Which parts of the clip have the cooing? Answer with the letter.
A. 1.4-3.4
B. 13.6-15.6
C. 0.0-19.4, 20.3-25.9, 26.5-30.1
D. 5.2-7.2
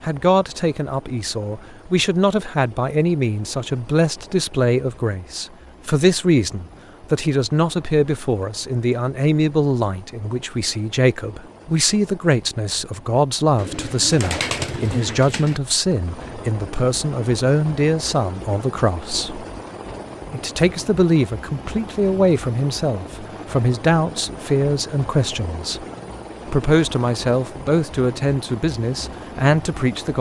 B.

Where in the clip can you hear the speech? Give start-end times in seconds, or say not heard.
0.0-19.4, 20.3-25.9, 26.5-30.1.